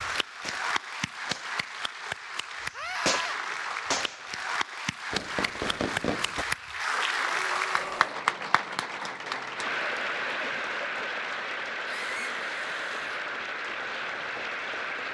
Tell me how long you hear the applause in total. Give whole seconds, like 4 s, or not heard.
15 s.